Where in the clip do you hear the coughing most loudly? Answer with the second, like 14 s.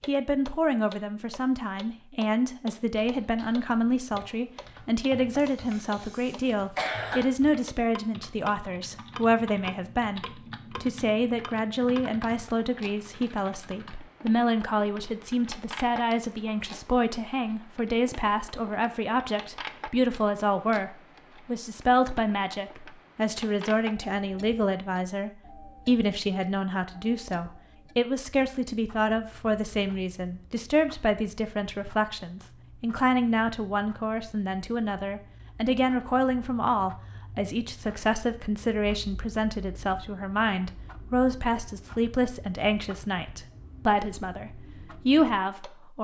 7 s.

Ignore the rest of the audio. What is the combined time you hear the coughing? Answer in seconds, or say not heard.
2 s.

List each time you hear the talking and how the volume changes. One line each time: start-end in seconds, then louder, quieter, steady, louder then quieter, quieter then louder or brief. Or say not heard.
0.1-45.9 steady.